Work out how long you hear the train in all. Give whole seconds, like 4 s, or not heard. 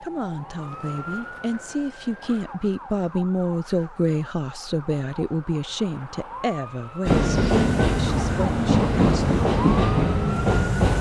4 s.